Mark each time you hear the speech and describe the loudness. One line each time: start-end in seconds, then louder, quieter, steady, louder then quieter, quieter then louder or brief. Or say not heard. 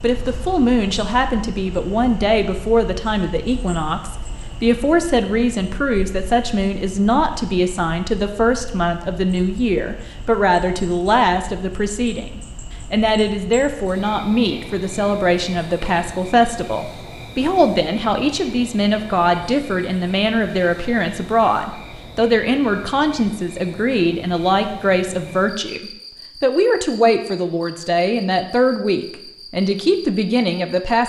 0.0-31.0 steady.